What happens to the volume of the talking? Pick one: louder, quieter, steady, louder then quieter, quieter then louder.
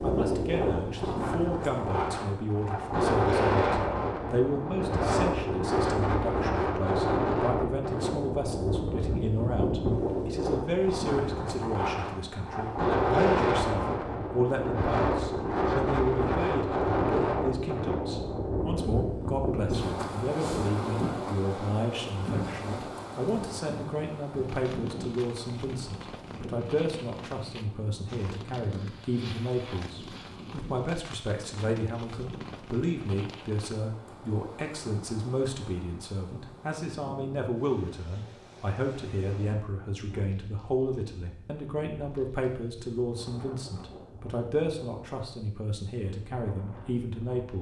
steady.